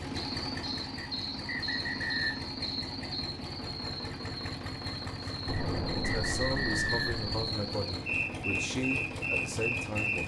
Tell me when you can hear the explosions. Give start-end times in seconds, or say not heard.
5.5-7.2.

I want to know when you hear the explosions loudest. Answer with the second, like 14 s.
6 s.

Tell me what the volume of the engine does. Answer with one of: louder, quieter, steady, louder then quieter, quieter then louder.
steady.